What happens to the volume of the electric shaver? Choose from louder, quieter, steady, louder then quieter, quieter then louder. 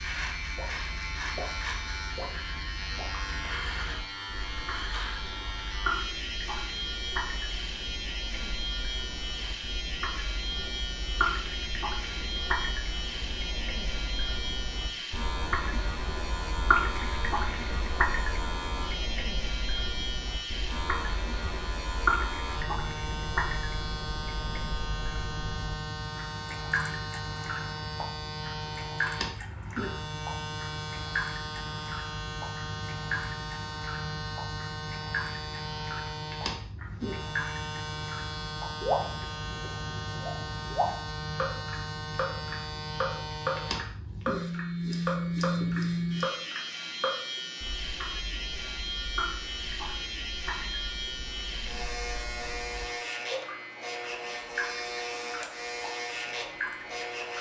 steady.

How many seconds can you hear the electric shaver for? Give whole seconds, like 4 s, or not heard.
57 s.